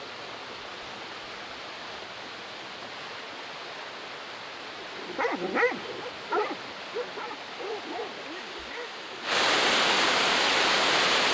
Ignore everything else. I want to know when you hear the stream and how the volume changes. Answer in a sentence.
You can hear the stream from 0.0 to 11.2 s, getting louder.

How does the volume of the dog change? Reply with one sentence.
The volume of the dog goes down.